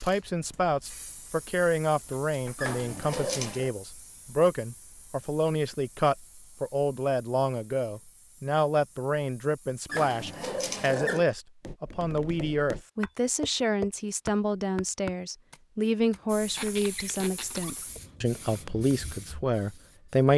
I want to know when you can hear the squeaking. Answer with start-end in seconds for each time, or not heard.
2.5-3.7, 9.8-11.2, 16.5-17.9.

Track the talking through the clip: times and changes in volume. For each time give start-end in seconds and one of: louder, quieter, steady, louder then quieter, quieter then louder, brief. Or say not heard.
0.0-20.3 steady.